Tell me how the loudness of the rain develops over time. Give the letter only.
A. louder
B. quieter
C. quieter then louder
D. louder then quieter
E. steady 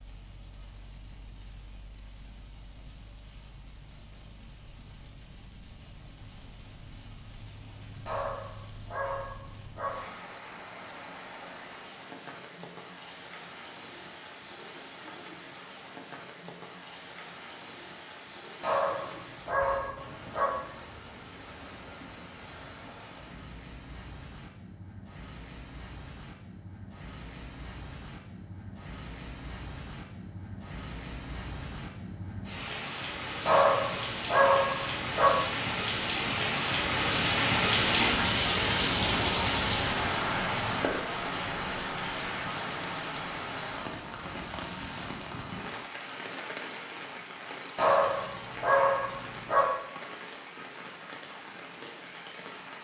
D.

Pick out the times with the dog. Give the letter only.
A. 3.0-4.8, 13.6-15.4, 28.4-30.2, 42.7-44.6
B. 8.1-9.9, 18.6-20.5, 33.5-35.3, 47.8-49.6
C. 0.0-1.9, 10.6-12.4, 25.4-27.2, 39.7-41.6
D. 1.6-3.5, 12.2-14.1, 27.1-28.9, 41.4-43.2
B.